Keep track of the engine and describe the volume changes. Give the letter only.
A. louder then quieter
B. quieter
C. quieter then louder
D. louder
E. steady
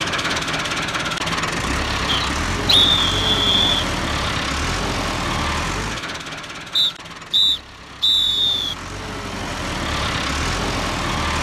C.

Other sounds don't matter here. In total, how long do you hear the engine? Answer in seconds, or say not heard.
11 s.